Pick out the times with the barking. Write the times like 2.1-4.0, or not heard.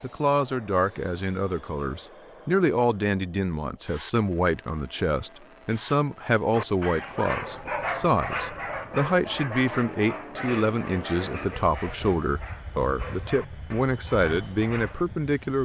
6.5-15.1.